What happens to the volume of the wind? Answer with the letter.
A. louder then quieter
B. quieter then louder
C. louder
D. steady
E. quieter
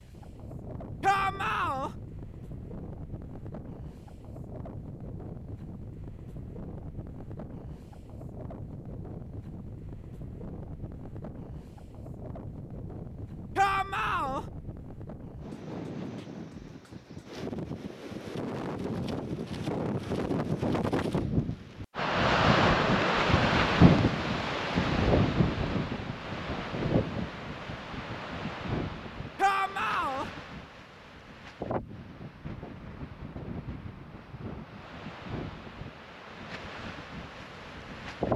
A.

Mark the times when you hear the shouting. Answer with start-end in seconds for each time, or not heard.
1.0-1.9, 13.6-14.4, 29.4-30.2.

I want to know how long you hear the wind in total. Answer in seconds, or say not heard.
38 s.